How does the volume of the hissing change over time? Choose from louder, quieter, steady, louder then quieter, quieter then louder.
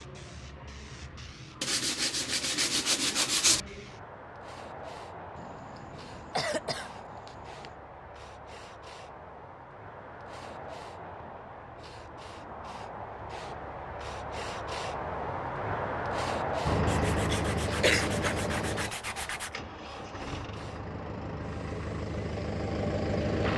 louder then quieter.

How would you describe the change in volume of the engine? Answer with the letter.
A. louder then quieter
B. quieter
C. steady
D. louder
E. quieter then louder
E.